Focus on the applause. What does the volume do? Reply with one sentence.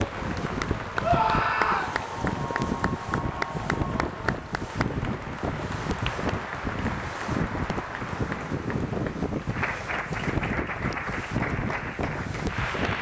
The loudness of the applause stays about the same.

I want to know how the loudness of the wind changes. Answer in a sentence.
The loudness of the wind stays about the same.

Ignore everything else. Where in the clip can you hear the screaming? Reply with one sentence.
You can hear the screaming from 1.0 to 2.0 s.